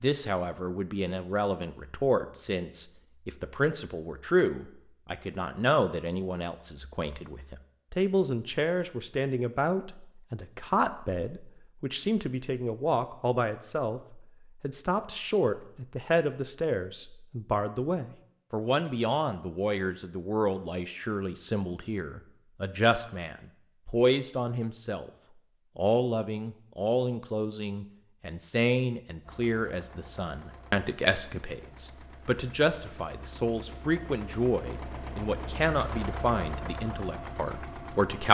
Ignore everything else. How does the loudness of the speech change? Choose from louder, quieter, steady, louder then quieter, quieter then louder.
steady.